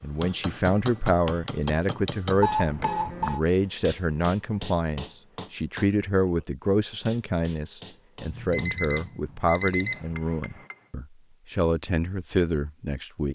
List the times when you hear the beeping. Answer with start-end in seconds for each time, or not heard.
2.4-3.4, 8.2-10.2.